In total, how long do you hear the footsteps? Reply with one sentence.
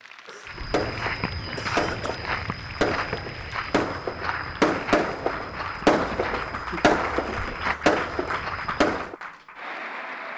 You can hear the footsteps for 9 seconds altogether.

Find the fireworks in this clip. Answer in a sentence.
You can hear the fireworks from 0.7 to 9.2 s.